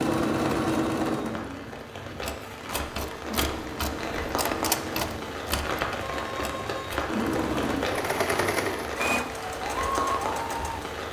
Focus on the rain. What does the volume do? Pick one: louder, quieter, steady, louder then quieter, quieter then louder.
louder.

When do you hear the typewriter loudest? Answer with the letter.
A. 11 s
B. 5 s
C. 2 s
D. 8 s
B.